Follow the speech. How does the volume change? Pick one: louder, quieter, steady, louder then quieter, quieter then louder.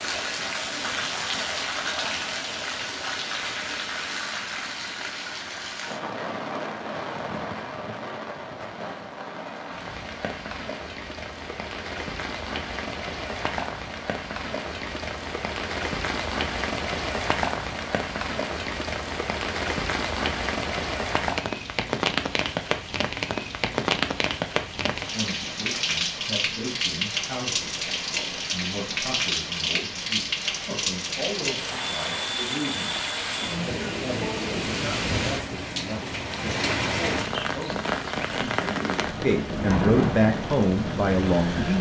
louder.